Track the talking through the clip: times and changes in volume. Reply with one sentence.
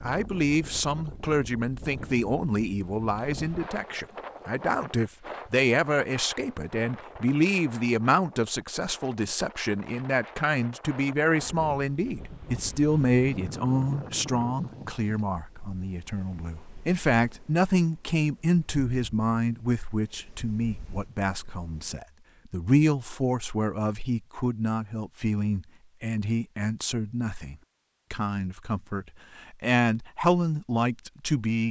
You can hear the talking from 0.0 to 31.6 s, at a steady volume.